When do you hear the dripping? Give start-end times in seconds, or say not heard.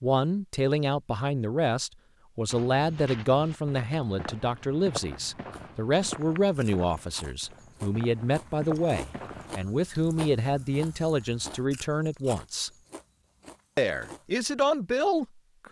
not heard.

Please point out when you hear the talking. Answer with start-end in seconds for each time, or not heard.
0.0-12.7, 13.8-15.6.